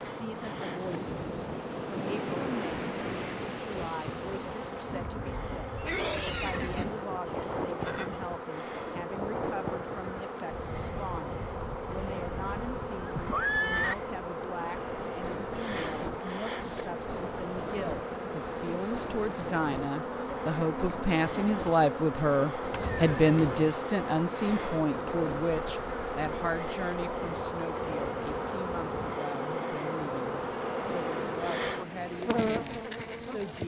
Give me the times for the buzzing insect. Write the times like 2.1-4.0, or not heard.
0.0-33.6.